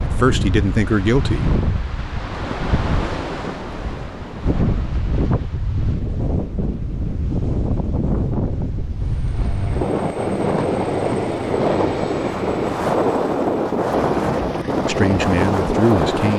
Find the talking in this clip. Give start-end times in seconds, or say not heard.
0.0-1.5, 14.8-16.3.